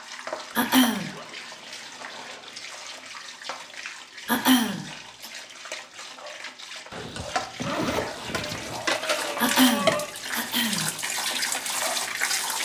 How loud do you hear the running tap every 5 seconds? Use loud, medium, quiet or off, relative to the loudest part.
medium, loud, loud.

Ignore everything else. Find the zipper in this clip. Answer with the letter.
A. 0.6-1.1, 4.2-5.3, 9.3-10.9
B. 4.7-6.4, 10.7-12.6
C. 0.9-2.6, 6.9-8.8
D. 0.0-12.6
C.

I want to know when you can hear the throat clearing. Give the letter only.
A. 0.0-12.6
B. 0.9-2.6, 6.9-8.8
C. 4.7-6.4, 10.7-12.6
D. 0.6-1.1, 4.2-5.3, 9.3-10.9
D.